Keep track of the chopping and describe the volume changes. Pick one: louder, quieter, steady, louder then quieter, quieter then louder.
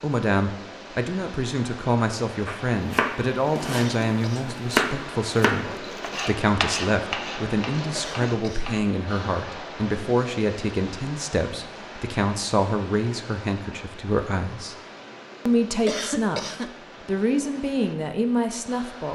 louder then quieter.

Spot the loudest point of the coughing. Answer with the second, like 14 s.
16 s.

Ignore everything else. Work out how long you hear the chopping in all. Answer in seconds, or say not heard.
6 s.